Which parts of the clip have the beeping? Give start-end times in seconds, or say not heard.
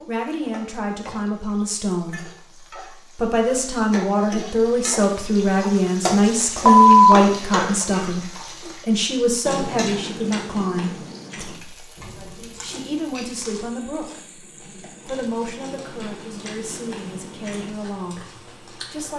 6.7-8.1.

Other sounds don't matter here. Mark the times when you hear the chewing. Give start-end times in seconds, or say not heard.
9.4-19.1.